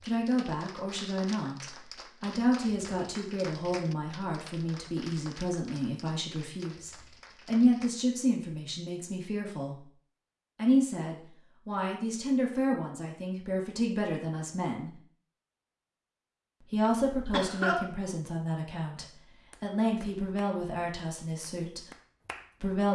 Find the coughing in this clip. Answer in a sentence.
The coughing can be heard from 16.9 to 17.9 s.